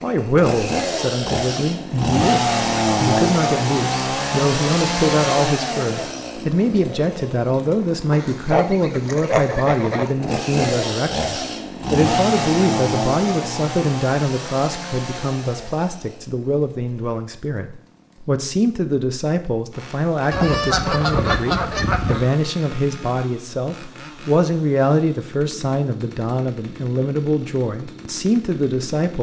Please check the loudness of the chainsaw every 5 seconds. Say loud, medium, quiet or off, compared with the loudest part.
loud, medium, loud, quiet, quiet, quiet.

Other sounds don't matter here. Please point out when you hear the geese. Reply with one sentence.
You can hear the geese from 8.1 to 10.1 s and from 20.3 to 22.3 s.